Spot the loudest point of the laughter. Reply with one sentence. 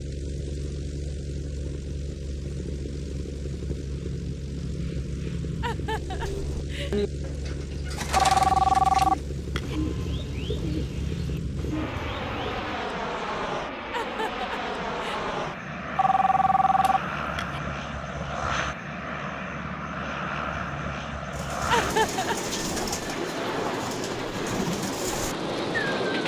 The volume of the laughter peaks at 22 seconds.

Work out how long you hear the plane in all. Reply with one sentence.
You can hear the plane for 26 seconds altogether.